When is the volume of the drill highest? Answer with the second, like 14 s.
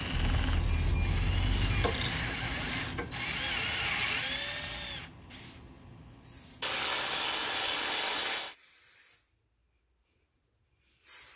4 s.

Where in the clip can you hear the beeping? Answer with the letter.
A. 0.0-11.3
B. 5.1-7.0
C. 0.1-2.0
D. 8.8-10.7
C.